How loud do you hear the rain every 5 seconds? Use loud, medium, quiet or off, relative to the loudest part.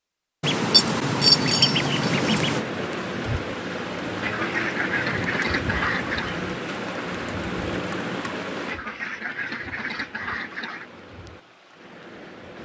loud, loud, quiet.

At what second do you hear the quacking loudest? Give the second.
1 s.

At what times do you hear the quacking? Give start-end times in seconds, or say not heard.
0.4-2.6, 4.2-6.4, 8.7-10.8.